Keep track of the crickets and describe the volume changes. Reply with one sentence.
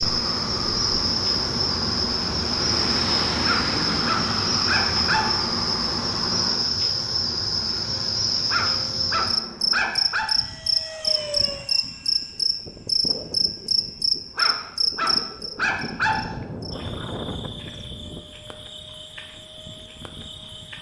The loudness of the crickets goes down.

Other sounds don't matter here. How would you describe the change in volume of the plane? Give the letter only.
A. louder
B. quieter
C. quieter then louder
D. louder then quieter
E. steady
B.